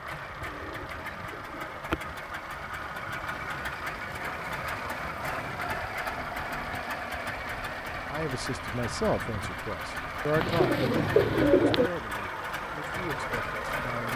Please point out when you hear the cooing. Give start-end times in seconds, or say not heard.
0.4-2.0, 10.3-11.9.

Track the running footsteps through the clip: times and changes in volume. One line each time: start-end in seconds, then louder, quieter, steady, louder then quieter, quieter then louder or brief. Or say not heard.
not heard.